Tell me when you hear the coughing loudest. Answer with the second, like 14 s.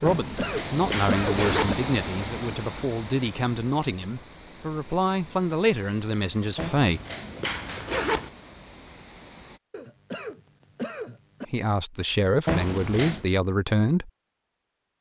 1 s.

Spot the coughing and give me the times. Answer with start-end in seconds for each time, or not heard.
0.0-1.8, 9.7-11.4.